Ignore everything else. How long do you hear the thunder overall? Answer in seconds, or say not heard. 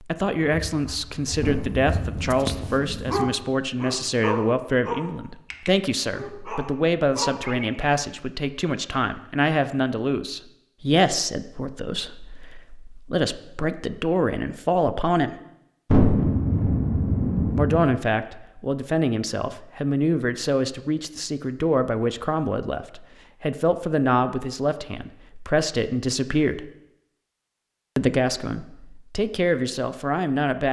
4 s.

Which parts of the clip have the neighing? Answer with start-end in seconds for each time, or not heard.
not heard.